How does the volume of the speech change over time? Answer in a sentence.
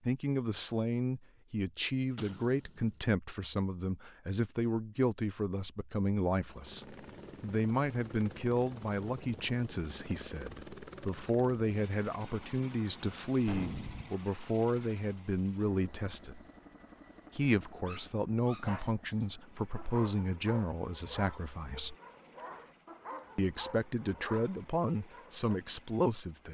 The loudness of the speech stays about the same.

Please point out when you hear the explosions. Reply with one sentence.
The explosions can be heard from 2.1 to 2.8 s and from 13.4 to 14.1 s.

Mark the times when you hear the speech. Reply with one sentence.
The speech can be heard from 0.1 to 16.4 s, from 17.4 to 21.9 s and from 23.4 to 26.4 s.